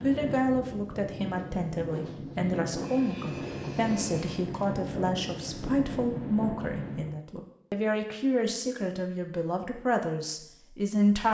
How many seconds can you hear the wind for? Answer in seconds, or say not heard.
7 s.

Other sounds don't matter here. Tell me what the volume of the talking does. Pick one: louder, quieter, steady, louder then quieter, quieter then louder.
steady.